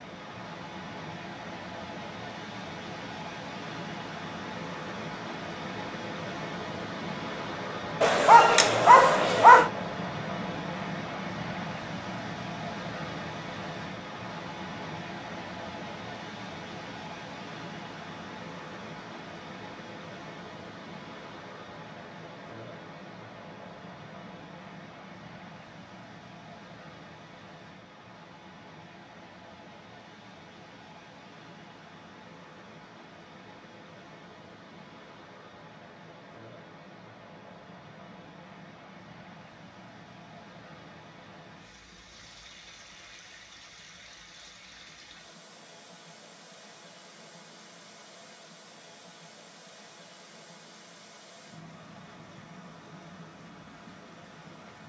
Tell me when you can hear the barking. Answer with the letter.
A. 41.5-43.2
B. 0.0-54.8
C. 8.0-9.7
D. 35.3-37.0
C.